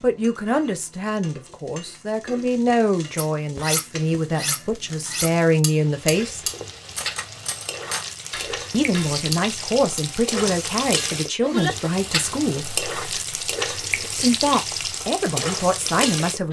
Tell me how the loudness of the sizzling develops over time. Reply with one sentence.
The loudness of the sizzling goes up.